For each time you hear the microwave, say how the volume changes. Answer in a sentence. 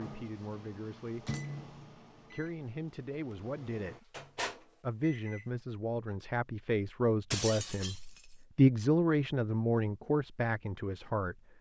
You can hear the microwave from 0.0 to 5.5 s, getting quieter then louder.